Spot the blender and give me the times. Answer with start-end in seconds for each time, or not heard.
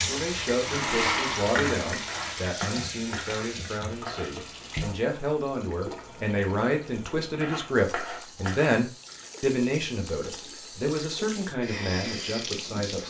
0.0-2.5.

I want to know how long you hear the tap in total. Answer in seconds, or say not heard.
13 s.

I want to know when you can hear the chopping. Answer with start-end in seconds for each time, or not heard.
2.0-4.7, 7.4-9.3.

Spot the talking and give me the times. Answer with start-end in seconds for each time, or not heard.
0.0-13.0.